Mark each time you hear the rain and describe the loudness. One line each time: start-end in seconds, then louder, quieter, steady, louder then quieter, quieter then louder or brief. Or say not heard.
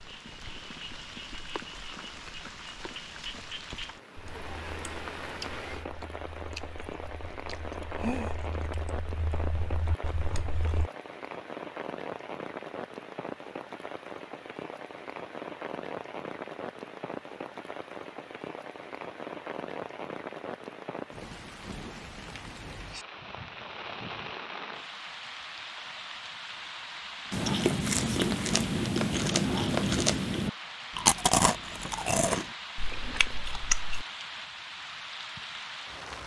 0.0-36.2 steady.